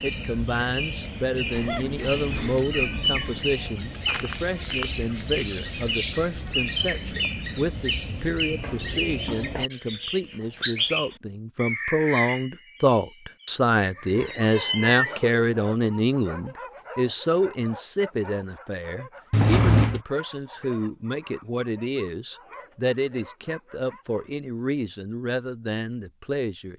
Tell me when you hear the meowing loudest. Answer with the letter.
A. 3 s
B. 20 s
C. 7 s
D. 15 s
B.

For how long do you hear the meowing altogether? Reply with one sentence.
The meowing can be heard for 4 seconds in total.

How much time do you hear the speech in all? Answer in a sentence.
The speech can be heard for 27 seconds in total.